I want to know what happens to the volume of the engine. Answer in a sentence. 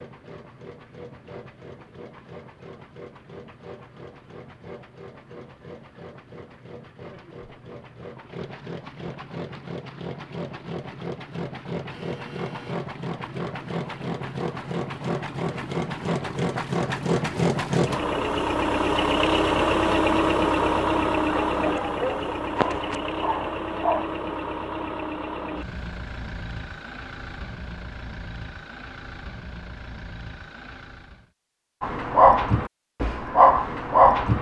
The loudness of the engine goes up, then down.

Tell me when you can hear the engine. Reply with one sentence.
The engine can be heard from 0.0 to 31.3 s.